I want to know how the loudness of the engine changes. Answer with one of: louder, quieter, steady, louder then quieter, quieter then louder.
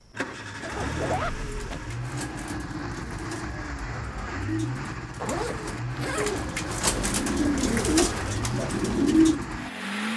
steady.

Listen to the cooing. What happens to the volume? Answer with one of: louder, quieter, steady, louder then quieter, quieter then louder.
louder.